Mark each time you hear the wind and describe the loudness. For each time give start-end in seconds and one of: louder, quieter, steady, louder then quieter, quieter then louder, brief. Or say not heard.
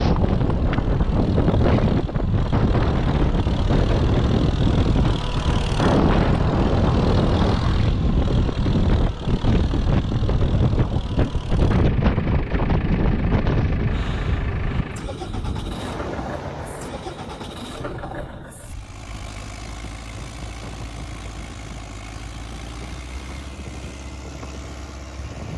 0.0-25.5 quieter.